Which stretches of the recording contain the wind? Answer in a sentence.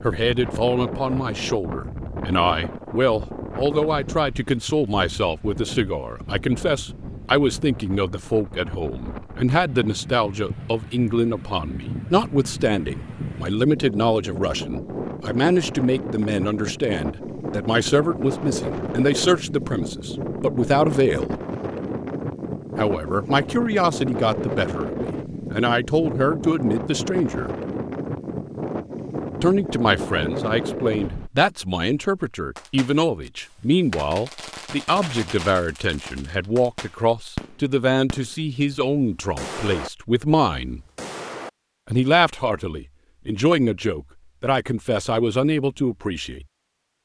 You can hear the wind from 0.0 to 31.3 s.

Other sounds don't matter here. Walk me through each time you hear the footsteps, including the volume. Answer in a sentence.
You can't hear the footsteps here.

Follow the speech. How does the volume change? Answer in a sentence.
The loudness of the speech stays about the same.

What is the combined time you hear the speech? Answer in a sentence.
The speech can be heard for 42 seconds in total.